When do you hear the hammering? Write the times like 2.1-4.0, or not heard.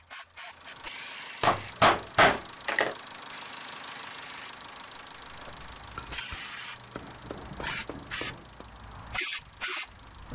1.4-3.0, 6.0-8.7.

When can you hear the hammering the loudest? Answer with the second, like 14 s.
2 s.